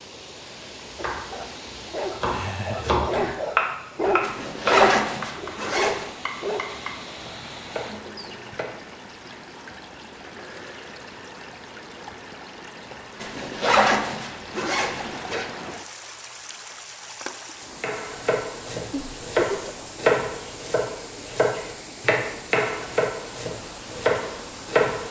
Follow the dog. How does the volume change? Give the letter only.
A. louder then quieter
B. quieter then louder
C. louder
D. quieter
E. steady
A.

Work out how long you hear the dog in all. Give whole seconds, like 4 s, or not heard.
6 s.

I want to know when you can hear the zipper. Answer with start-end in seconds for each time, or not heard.
4.2-6.1, 13.2-15.4.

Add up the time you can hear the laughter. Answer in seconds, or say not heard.
2 s.